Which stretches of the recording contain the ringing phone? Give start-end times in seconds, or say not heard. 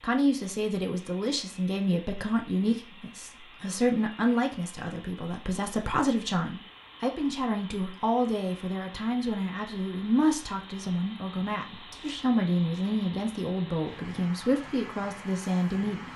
not heard.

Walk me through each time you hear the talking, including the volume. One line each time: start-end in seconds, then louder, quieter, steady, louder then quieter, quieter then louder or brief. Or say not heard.
0.0-16.1 steady.